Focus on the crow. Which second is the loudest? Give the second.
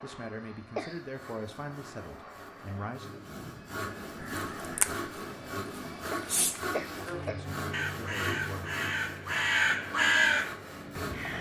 10 s.